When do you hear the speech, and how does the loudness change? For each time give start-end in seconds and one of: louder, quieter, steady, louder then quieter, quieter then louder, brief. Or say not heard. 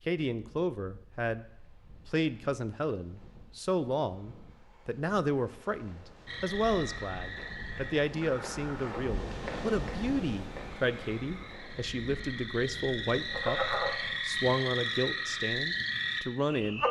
0.1-16.8 steady.